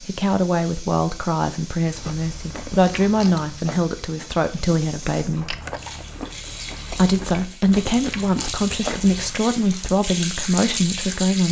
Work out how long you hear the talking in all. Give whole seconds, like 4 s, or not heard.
10 s.